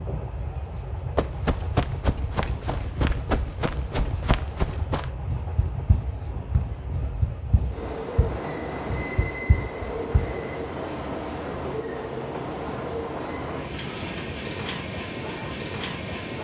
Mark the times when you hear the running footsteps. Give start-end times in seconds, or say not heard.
1.1-10.3.